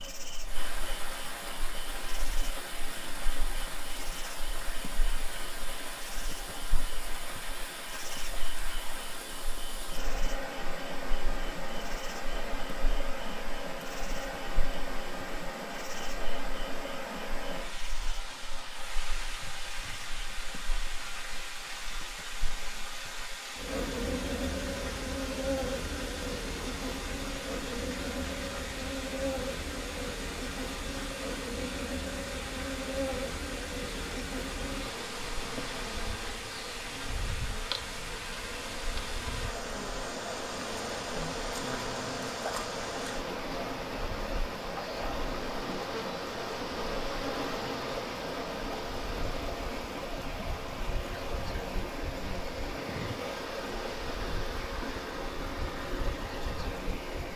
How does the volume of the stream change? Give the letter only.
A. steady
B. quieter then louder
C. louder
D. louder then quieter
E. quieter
A.